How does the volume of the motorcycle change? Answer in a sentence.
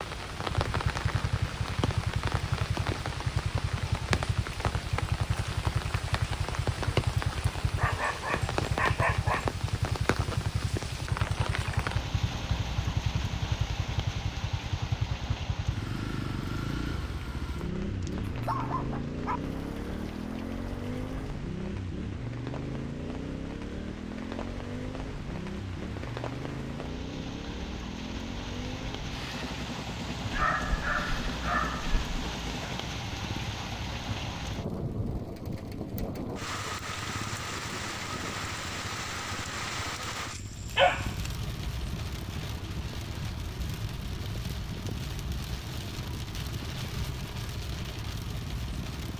The volume of the motorcycle goes down.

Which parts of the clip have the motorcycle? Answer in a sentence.
You can hear the motorcycle from 0.0 to 48.9 s.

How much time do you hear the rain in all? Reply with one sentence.
You can hear the rain for 49 seconds altogether.